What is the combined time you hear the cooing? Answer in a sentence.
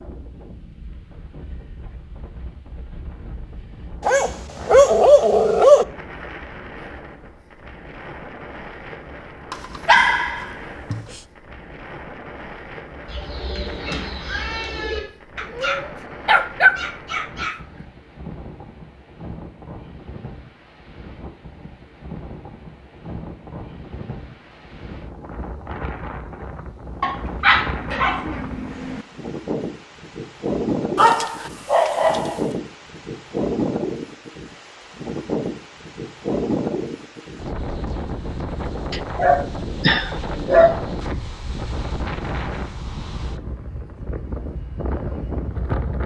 You can hear the cooing for 2 seconds altogether.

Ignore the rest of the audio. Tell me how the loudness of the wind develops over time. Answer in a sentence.
The loudness of the wind goes up.